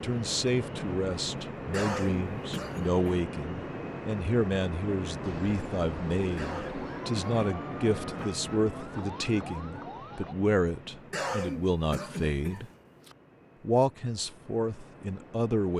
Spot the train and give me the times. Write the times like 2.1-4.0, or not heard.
0.0-15.7.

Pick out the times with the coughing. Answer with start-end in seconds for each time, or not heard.
1.7-3.0, 6.3-7.5, 11.1-13.2.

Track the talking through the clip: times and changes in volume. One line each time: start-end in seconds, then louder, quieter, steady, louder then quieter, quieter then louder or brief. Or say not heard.
0.0-12.7 steady
13.6-15.7 brief.